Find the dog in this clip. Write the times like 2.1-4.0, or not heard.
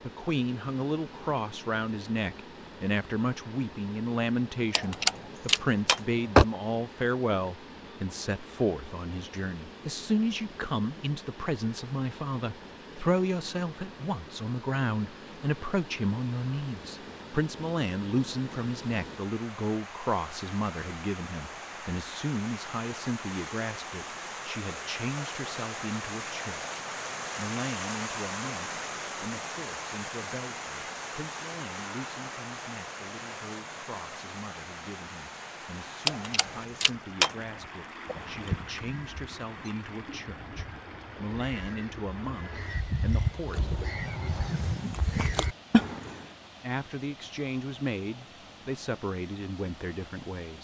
4.7-6.5, 36.0-37.3.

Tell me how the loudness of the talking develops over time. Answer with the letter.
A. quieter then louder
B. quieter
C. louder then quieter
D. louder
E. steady
A.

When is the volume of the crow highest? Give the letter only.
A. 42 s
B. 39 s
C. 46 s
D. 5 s
C.